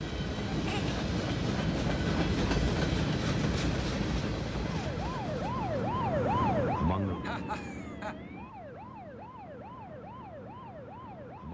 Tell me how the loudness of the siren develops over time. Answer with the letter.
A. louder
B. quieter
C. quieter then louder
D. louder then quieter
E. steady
B.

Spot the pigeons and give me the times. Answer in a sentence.
You can't hear the pigeons here.